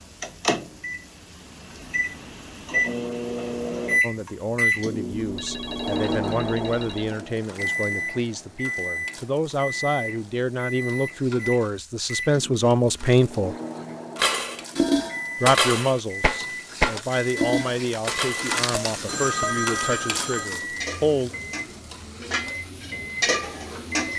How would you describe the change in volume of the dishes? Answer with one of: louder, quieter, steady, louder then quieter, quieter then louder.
quieter then louder.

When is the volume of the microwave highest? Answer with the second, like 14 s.
4 s.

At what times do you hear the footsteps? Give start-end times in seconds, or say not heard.
not heard.